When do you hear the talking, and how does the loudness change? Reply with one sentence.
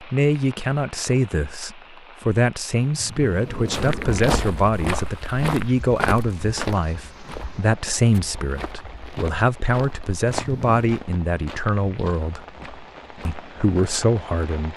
The talking can be heard from 0.0 to 12.4 s, at a steady volume; and briefly from 13.2 to 14.7 s.